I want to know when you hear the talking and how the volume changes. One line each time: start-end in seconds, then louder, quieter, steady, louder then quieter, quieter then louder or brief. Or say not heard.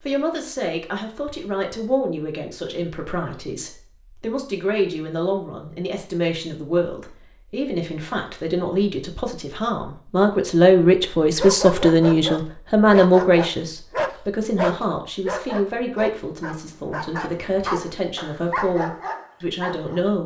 0.0-20.2 louder then quieter.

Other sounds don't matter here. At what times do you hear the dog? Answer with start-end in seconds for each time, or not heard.
11.3-20.1.